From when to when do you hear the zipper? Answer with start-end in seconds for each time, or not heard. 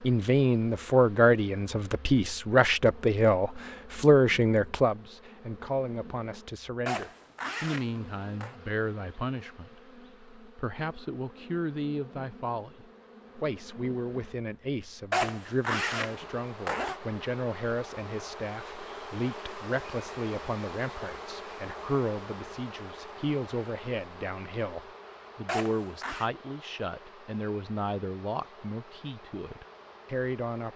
6.8-8.6, 15.1-17.0, 25.4-26.3.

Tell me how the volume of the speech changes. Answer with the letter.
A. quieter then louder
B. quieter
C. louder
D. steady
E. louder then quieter
B.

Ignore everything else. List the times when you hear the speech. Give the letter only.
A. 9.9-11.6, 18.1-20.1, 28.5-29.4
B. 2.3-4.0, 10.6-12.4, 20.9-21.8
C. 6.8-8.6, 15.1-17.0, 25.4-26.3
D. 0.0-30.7
D.